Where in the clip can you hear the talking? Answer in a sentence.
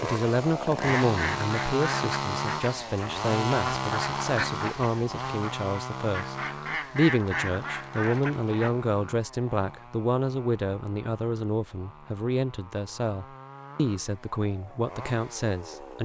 The talking can be heard from 0.0 to 16.0 s.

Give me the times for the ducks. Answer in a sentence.
You can hear the ducks from 0.7 to 8.8 s.